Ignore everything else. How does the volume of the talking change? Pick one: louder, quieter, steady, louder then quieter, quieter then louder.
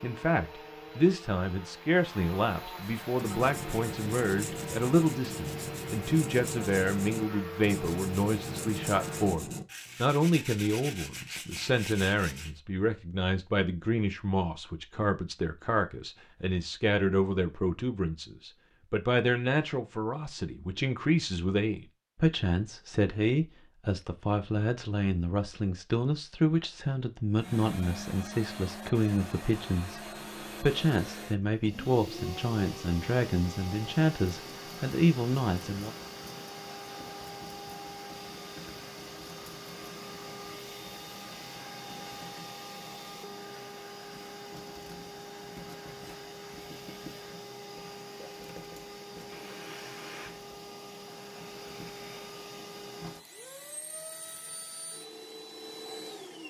steady.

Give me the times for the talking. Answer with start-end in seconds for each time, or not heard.
0.0-36.0.